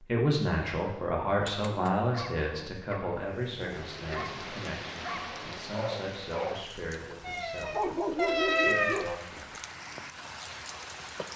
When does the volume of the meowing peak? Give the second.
9 s.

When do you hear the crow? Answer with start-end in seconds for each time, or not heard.
not heard.